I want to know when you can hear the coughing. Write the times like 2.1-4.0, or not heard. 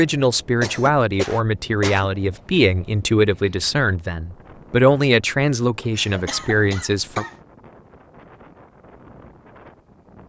0.6-2.1, 6.0-7.3.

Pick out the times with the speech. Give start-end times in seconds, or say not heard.
0.0-7.2.